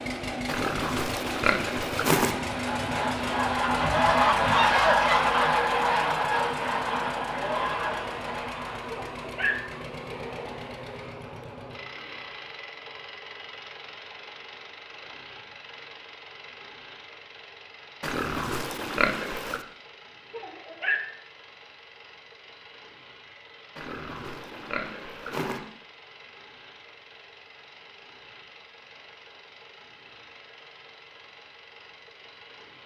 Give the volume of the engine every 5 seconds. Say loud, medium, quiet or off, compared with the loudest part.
loud, loud, medium, quiet, quiet, quiet, quiet.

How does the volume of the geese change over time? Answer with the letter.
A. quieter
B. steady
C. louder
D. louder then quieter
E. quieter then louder
D.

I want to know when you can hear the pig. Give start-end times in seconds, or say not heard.
0.5-2.4, 18.0-19.6, 23.8-25.6.